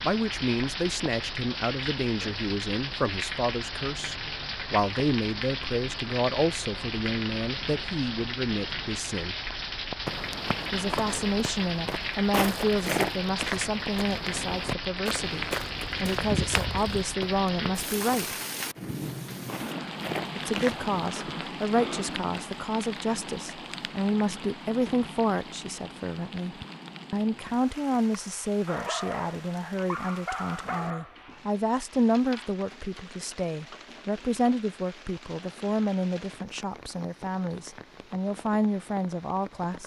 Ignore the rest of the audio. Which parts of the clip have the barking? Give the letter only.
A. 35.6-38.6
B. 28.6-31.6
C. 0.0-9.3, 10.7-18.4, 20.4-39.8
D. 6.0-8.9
B.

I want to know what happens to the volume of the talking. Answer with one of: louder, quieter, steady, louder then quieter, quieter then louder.
steady.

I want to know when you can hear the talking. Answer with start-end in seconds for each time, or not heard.
0.0-9.3, 10.7-18.4, 20.4-39.8.